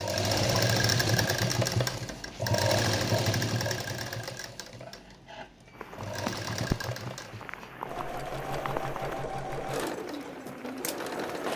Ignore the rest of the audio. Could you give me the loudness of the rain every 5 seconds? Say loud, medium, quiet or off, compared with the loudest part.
off, loud, loud.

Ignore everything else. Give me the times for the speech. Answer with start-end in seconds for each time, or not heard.
not heard.